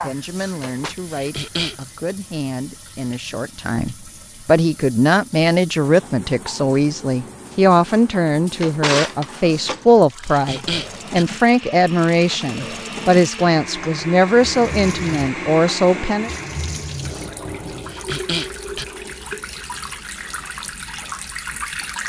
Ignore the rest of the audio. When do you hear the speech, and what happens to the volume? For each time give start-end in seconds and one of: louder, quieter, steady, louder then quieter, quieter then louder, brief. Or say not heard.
0.0-16.3 louder.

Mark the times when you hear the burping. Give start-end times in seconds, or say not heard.
not heard.